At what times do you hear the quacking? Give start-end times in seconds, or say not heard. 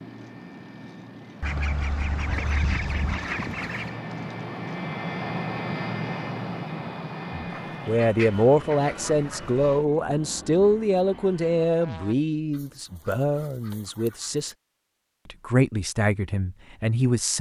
1.4-4.0, 7.5-9.5, 12.5-14.6.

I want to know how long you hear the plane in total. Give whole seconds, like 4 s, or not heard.
12 s.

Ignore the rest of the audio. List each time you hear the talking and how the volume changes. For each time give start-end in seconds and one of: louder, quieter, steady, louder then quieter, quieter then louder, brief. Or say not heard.
7.3-14.6 quieter
15.2-17.3 brief.